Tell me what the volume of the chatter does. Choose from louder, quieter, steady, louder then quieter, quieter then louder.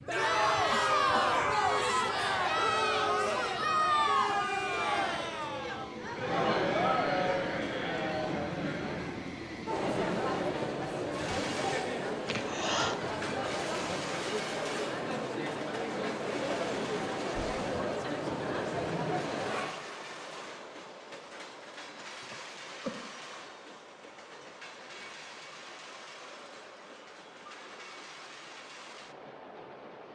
quieter.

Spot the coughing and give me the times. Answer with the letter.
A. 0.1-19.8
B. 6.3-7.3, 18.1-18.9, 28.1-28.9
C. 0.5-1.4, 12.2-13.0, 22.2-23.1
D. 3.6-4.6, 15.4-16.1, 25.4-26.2
C.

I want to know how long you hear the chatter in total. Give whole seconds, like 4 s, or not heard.
20 s.